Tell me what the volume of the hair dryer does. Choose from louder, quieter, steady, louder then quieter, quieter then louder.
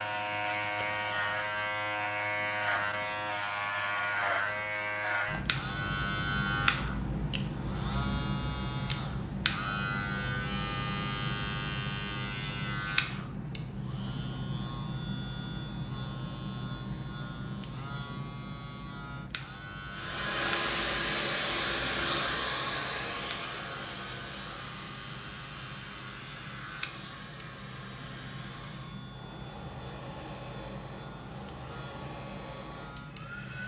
quieter.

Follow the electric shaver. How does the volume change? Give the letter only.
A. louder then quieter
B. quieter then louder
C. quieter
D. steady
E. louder
C.